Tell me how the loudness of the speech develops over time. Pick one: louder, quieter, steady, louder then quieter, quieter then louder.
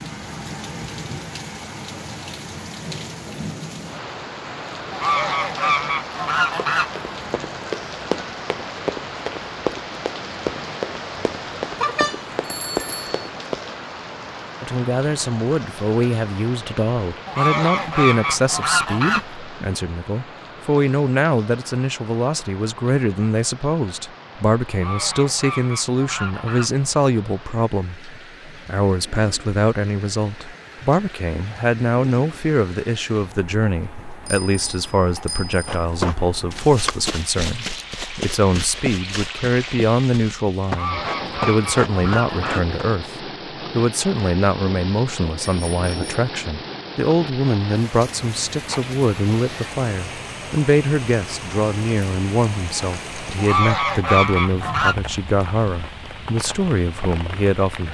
steady.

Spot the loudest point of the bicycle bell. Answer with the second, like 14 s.
12 s.